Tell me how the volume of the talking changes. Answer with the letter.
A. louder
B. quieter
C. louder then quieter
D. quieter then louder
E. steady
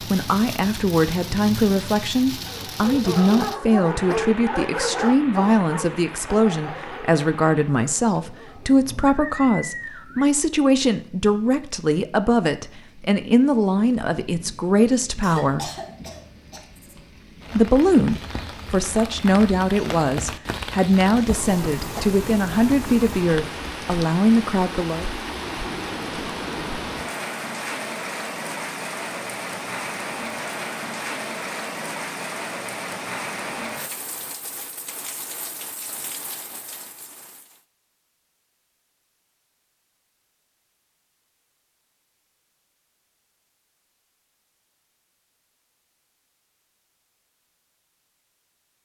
E.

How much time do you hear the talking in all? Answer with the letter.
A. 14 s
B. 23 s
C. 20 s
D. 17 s
B.